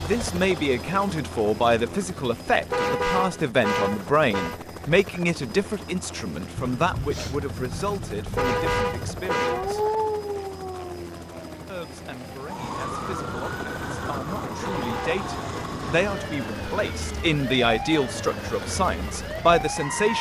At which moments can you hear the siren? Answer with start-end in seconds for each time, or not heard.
6.5-20.1.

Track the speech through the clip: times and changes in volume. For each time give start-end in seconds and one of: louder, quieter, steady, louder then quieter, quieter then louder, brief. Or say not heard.
0.0-9.8 quieter
11.7-20.1 louder.